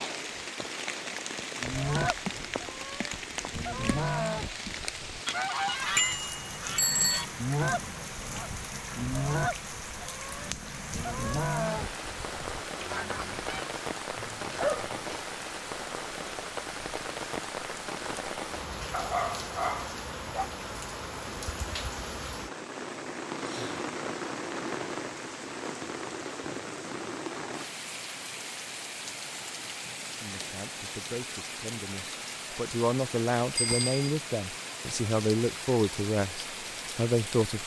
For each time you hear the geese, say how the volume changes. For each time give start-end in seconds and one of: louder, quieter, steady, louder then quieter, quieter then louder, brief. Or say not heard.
1.6-13.8 steady.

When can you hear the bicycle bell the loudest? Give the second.
7 s.